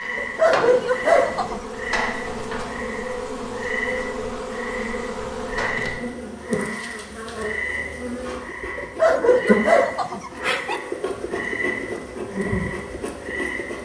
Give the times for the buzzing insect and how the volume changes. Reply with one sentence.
The buzzing insect can be heard from 0.0 to 13.8 s, at a steady volume.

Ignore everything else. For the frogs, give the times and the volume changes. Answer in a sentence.
You can hear the frogs from 0.0 to 13.8 s, at a steady volume.